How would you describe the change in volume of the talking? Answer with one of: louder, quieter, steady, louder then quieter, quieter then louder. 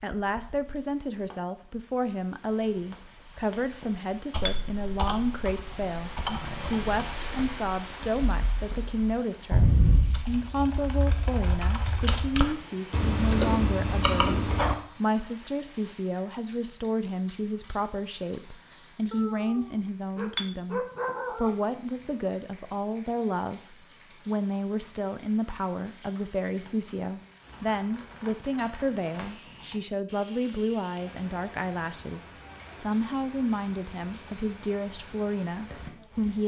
steady.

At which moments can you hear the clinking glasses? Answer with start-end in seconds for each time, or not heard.
4.5-5.2, 20.4-21.1.